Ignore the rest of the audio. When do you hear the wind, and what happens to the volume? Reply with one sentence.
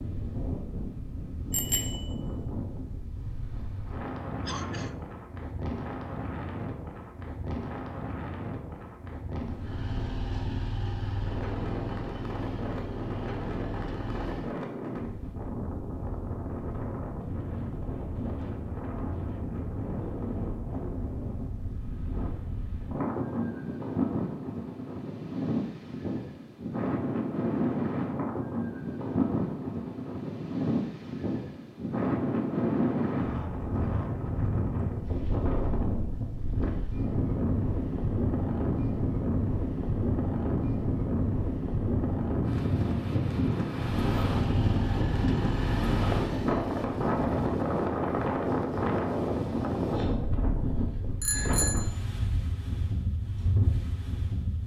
You can hear the wind from 0.0 to 54.6 s, getting louder.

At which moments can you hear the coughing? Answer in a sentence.
You can hear the coughing from 4.5 to 5.0 s.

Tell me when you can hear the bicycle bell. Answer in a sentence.
The bicycle bell can be heard from 1.5 to 2.1 s and from 51.2 to 51.9 s.